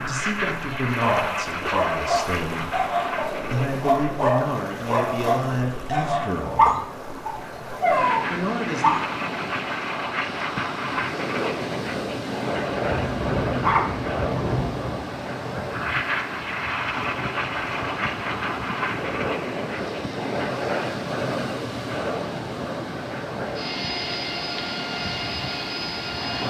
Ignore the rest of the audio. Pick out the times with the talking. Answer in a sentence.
The talking can be heard from 0.0 to 6.8 s and from 8.2 to 8.9 s.